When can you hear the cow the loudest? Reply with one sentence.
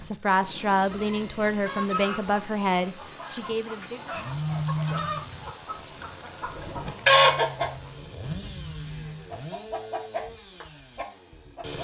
The volume of the cow peaks at 5 seconds.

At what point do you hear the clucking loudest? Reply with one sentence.
The volume of the clucking peaks at 7 seconds.